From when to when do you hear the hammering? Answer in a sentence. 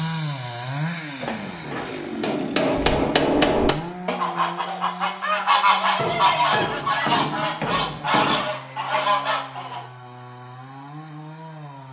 You can hear the hammering from 1.2 to 3.8 s and from 6.0 to 8.4 s.